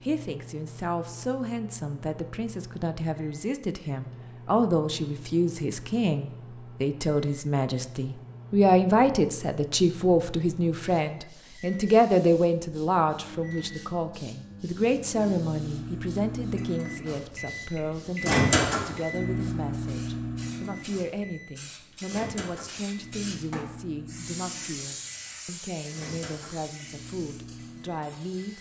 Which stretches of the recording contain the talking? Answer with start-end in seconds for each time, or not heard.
0.0-28.5.